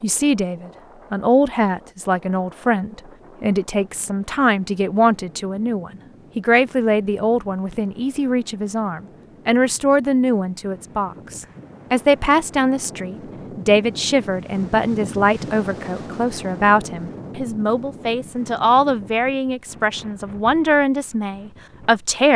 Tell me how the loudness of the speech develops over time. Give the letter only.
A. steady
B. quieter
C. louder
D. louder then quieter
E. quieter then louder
A.